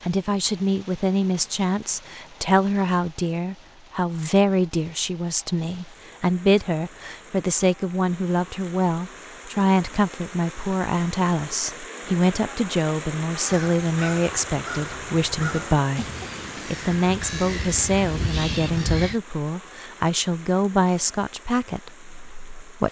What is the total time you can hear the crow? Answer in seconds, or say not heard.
6 s.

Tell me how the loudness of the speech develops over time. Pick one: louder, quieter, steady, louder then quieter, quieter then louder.
steady.